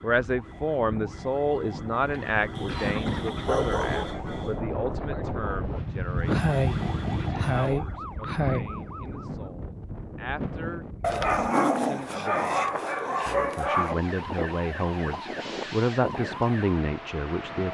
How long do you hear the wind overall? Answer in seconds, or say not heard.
18 s.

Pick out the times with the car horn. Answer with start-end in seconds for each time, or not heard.
not heard.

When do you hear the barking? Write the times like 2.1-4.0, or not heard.
2.5-4.0, 11.0-13.9.